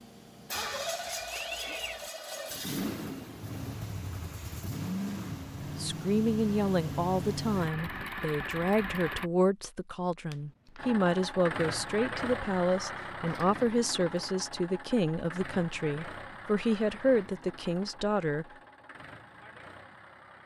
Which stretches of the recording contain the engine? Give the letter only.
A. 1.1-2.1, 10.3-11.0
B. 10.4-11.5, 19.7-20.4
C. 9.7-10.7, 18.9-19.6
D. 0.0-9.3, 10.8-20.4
D.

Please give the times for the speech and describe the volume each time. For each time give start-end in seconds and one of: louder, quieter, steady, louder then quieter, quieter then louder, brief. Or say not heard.
5.8-18.4 steady.